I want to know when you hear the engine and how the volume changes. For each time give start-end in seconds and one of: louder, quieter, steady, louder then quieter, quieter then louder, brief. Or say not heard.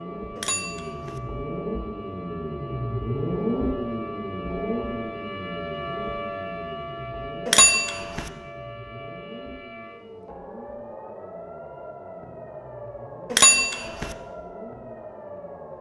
0.0-15.7 quieter.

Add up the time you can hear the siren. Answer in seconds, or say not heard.
16 s.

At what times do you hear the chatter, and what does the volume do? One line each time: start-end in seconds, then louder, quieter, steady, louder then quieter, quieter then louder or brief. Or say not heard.
not heard.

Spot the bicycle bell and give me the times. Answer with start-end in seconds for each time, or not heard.
0.3-1.2, 7.5-8.3, 13.3-14.2.